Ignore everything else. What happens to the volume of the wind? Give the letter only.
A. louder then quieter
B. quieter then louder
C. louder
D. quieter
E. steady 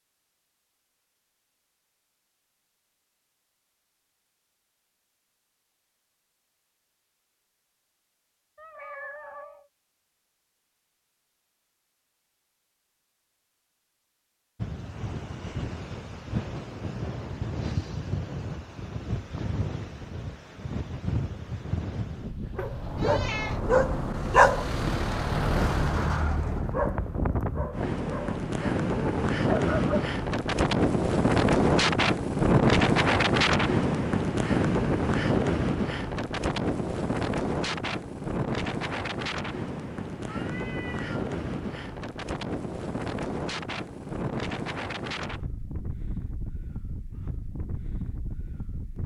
A.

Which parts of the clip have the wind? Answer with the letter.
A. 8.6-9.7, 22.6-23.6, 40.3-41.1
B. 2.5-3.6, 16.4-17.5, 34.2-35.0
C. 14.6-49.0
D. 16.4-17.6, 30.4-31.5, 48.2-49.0
C.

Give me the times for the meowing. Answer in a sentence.
The meowing can be heard from 8.6 to 9.7 s, from 22.6 to 23.6 s and from 40.3 to 41.1 s.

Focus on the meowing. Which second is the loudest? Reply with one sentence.
The loudest moment of the meowing is at 23 seconds.